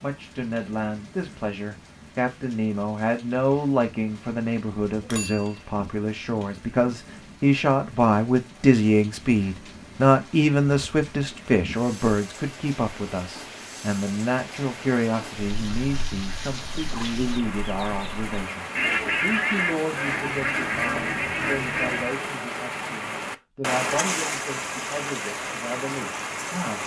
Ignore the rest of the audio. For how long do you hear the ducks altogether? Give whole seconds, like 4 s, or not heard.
7 s.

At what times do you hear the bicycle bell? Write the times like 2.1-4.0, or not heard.
5.0-5.8.